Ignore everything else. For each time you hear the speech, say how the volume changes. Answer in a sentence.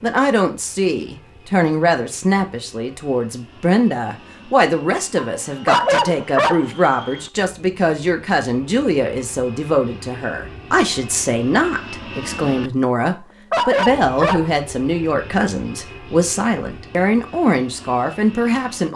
You can hear the speech from 0.0 to 18.9 s, at a steady volume.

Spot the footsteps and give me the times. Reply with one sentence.
You can't hear the footsteps here.